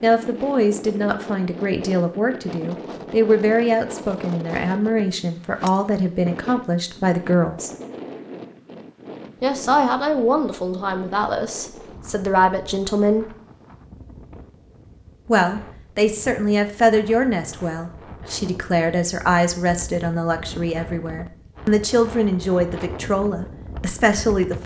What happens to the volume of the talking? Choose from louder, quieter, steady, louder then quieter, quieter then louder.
steady.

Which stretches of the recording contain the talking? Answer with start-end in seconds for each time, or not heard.
0.0-7.7, 9.4-13.3, 15.2-24.6.